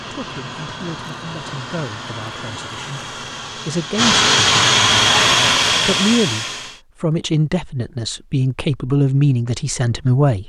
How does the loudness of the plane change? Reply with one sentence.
The loudness of the plane goes up.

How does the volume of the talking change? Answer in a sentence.
The volume of the talking goes up.